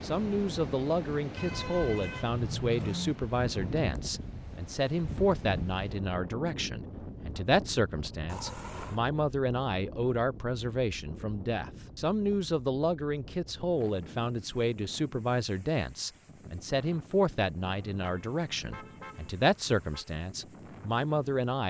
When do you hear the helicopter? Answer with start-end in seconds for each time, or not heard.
not heard.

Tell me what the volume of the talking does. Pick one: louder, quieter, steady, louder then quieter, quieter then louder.
steady.